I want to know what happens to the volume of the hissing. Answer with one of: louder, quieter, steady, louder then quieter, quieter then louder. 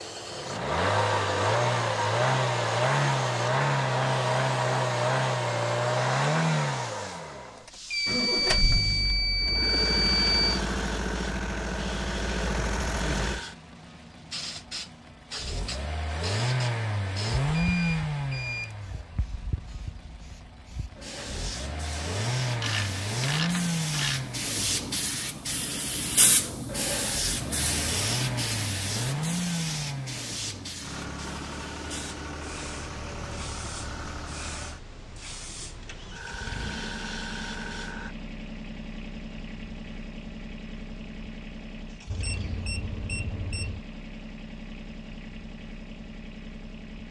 louder then quieter.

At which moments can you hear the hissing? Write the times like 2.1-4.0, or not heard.
0.0-38.1.